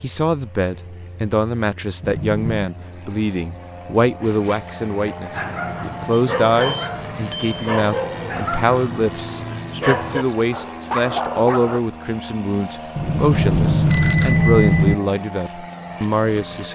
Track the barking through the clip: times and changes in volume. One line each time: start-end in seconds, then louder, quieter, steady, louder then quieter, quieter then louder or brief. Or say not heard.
5.3-11.8 steady.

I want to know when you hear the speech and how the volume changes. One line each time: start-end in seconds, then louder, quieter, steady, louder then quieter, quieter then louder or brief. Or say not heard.
0.0-16.7 steady.